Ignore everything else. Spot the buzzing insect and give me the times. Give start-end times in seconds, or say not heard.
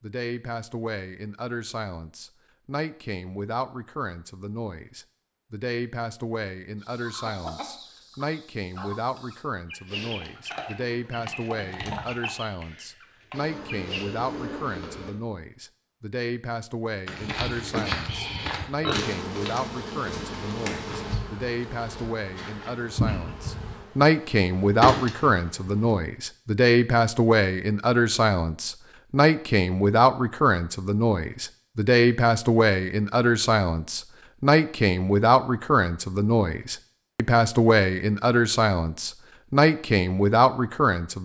13.3-15.2, 18.9-25.9.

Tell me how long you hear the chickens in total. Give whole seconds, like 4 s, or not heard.
7 s.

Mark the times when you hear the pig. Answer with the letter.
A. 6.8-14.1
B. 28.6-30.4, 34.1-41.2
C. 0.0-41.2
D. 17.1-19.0
D.